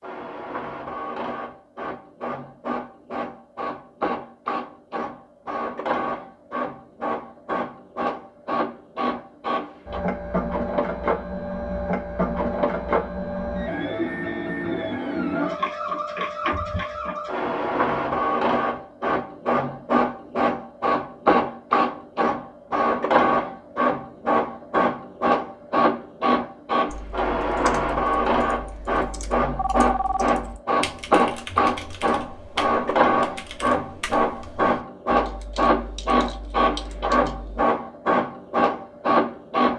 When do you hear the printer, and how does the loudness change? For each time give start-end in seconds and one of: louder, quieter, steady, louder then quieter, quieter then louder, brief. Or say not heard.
0.0-39.7 louder.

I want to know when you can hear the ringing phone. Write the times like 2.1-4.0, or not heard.
29.6-30.4.